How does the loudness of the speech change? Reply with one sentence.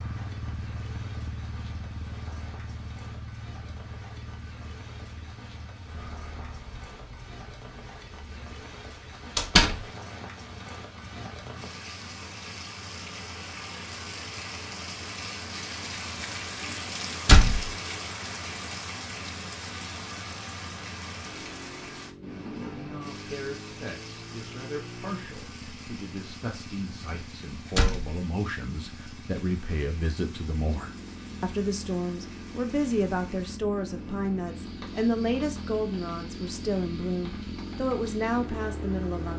The volume of the speech goes up.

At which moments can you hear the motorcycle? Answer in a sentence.
You can hear the motorcycle from 0.0 to 39.3 s.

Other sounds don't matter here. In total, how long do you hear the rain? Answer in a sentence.
The rain can be heard for 39 seconds in total.